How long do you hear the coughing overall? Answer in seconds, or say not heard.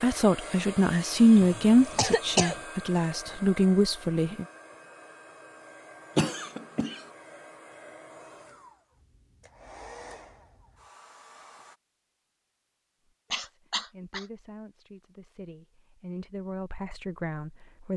3 s.